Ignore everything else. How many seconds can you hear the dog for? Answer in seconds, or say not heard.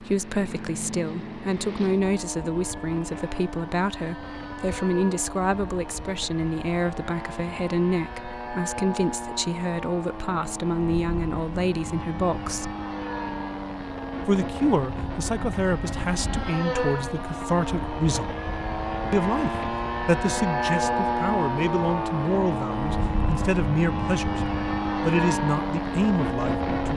not heard.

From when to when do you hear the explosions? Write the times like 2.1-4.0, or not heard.
not heard.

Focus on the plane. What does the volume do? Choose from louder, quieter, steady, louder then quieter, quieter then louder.
louder.